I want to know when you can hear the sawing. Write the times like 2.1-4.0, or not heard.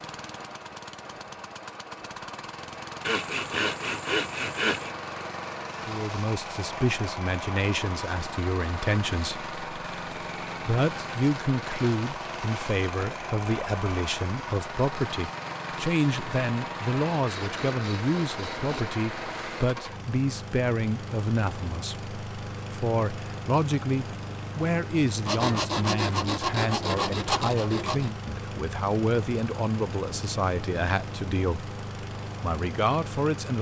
3.0-4.9, 17.1-18.9, 25.2-28.1.